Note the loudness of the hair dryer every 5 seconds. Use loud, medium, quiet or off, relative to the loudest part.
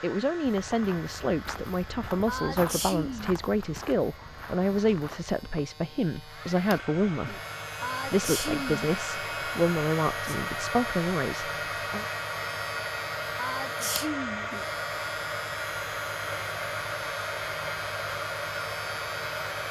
quiet, loud, loud, loud.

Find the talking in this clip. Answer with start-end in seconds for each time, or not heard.
0.0-7.3, 8.1-12.1.